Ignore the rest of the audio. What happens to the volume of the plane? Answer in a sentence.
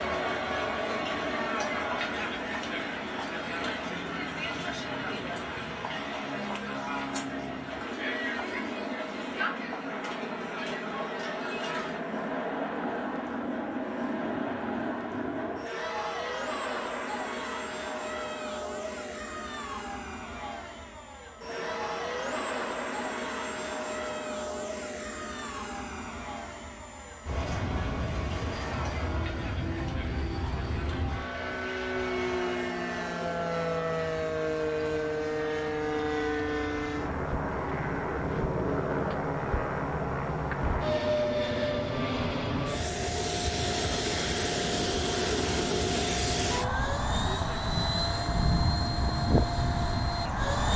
The loudness of the plane goes up.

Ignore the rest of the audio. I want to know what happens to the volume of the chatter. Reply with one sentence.
The volume of the chatter goes down.